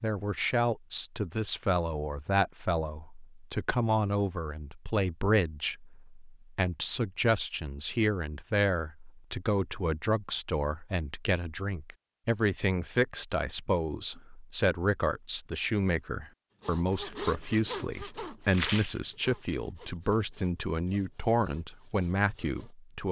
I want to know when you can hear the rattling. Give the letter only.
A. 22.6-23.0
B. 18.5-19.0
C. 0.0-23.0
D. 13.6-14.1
B.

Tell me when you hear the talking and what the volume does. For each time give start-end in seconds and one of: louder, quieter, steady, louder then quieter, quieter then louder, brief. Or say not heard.
0.0-23.0 steady.